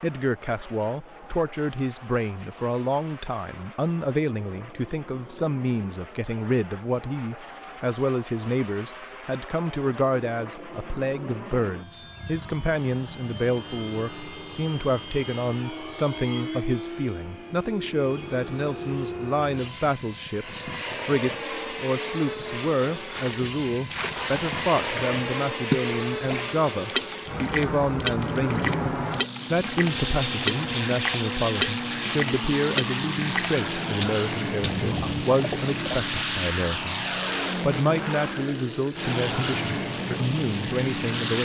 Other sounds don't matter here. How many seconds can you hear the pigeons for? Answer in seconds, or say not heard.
2 s.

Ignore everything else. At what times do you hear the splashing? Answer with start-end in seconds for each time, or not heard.
23.1-34.9.